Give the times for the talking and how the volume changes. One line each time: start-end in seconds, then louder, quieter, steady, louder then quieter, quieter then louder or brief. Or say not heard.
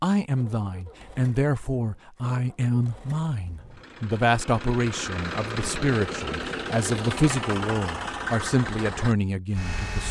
0.0-10.0 steady.